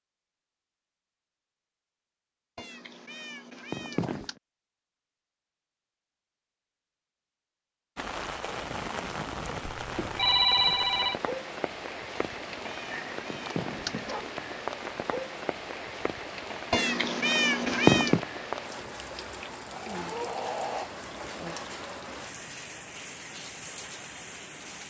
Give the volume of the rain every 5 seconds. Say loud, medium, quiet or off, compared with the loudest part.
off, loud, loud, loud, loud.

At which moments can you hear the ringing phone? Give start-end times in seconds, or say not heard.
9.7-11.2.